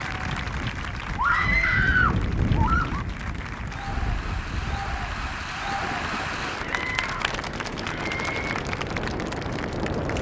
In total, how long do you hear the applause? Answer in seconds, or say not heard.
10 s.